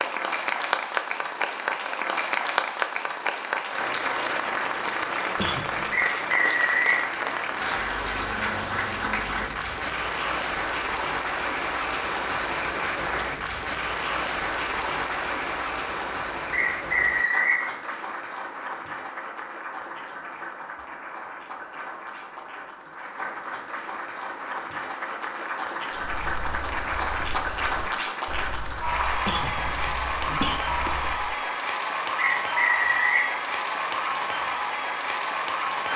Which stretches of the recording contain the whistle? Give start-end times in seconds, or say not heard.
5.9-7.0, 16.5-17.6, 32.1-33.3.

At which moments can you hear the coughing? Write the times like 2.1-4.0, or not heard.
5.3-6.0, 29.2-30.9.